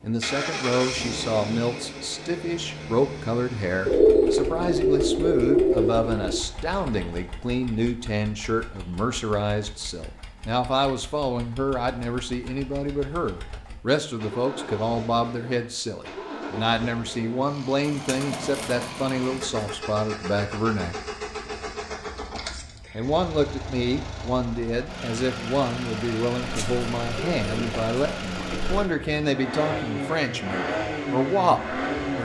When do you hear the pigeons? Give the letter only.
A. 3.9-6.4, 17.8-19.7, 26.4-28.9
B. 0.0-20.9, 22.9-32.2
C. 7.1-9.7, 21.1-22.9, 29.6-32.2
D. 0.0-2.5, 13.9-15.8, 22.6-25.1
A.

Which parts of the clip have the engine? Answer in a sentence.
The engine can be heard from 0.0 to 32.2 s.